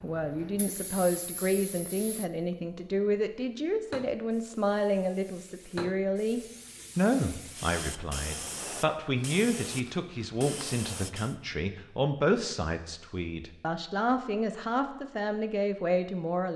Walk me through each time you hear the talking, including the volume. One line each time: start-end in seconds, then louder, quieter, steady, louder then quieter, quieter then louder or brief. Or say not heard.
0.0-16.5 steady.